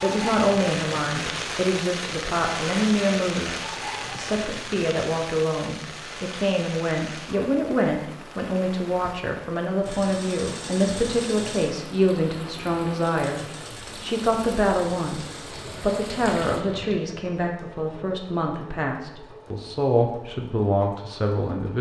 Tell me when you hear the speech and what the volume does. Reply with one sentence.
The speech can be heard from 0.0 to 21.7 s, at a steady volume.